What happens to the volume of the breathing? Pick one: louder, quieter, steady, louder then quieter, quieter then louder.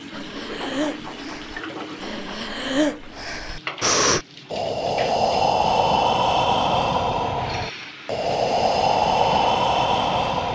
louder.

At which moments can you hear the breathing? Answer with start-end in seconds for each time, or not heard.
0.1-10.5.